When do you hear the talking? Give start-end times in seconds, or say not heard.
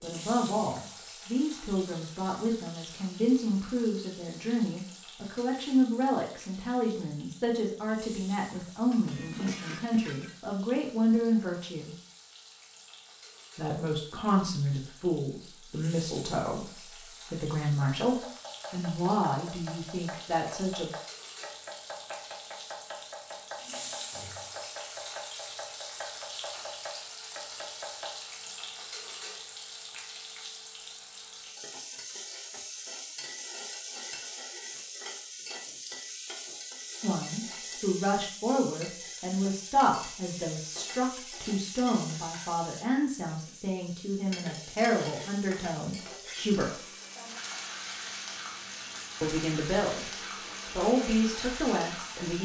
0.0-11.9, 13.6-20.9, 37.0-46.8, 49.2-52.4.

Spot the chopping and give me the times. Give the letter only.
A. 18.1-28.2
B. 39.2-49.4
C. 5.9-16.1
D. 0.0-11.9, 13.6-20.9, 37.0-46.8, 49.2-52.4
A.